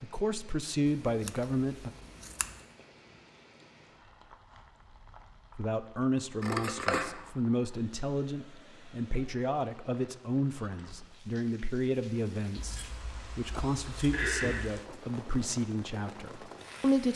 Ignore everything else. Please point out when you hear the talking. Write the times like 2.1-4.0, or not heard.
0.0-1.9, 5.5-17.1.